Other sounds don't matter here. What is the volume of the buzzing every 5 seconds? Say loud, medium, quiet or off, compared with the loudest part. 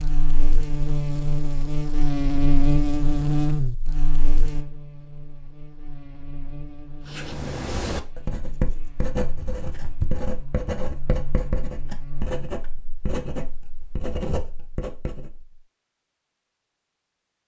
loud, quiet, quiet, off.